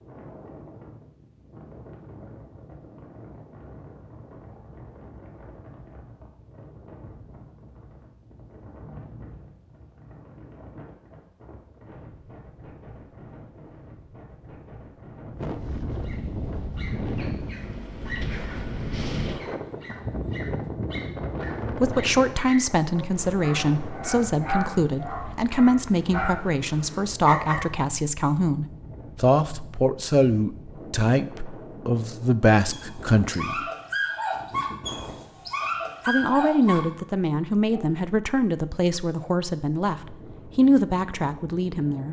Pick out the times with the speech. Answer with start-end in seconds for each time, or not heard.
21.7-33.6, 36.0-42.0.